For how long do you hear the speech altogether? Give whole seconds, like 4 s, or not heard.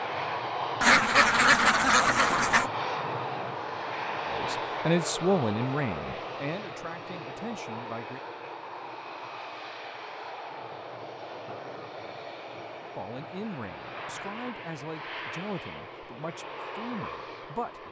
9 s.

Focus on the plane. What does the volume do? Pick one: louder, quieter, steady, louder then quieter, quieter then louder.
quieter.